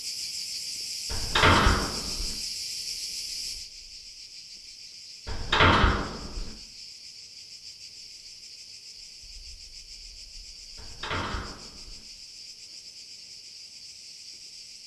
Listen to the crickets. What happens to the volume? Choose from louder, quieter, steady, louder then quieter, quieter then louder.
quieter.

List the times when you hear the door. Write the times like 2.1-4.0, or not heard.
1.1-2.4, 5.2-6.5, 10.8-12.1.